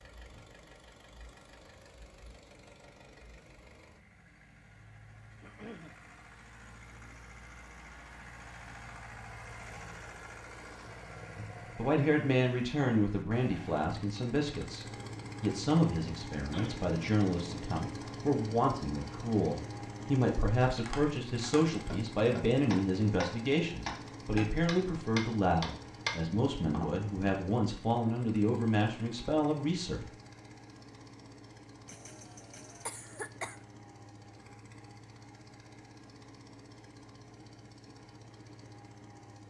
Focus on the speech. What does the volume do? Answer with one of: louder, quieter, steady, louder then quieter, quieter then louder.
steady.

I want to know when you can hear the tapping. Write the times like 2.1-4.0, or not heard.
20.8-27.4.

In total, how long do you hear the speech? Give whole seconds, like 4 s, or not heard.
19 s.